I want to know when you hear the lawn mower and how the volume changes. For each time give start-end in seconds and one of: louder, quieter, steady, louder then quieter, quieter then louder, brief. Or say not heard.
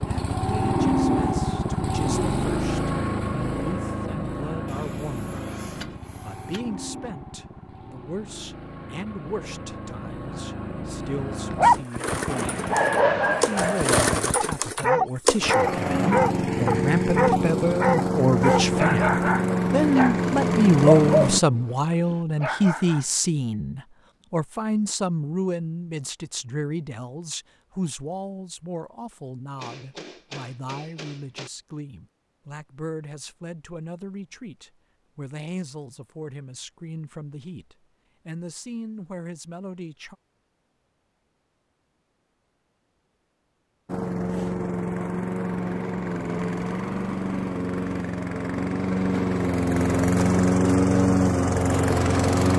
0.0-21.4 quieter then louder
43.9-52.5 louder.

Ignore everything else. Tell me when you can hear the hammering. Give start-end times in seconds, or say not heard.
4.7-6.6, 29.6-31.5.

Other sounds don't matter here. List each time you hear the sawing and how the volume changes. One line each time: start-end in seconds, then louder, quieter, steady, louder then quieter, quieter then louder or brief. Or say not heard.
not heard.